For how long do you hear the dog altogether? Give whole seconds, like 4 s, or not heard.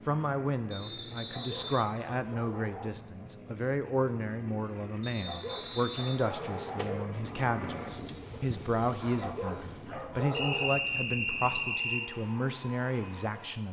5 s.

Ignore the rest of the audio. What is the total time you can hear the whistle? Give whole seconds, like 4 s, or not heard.
5 s.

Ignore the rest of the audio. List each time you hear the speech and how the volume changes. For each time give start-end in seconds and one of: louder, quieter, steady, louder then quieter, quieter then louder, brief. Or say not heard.
0.1-13.6 steady.